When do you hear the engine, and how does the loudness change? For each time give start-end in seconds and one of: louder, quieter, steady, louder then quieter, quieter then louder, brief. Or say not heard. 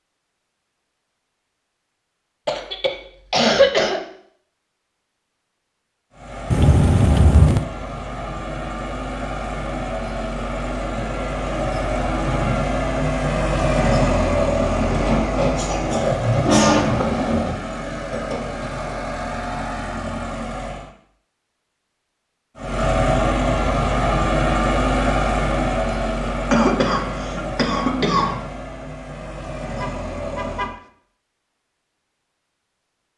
6.1-20.9 louder then quieter
22.6-30.8 quieter.